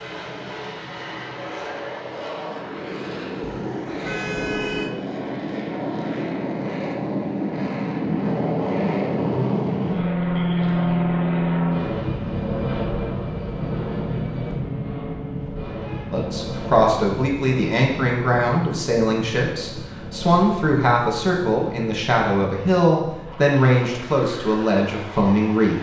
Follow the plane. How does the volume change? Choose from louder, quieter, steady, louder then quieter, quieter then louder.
louder then quieter.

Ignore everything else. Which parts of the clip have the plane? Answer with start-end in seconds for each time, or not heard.
0.0-25.7.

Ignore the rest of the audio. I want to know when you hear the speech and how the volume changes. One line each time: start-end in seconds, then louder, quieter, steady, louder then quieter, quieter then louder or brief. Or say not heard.
16.1-25.7 steady.